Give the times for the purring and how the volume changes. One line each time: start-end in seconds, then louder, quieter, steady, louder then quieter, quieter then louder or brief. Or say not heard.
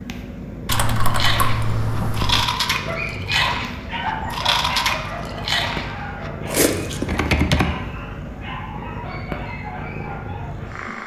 0.0-11.0 steady.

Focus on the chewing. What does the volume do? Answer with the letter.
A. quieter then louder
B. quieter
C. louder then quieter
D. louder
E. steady
E.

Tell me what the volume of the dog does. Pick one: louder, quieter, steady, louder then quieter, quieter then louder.
quieter.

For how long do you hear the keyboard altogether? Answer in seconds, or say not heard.
3 s.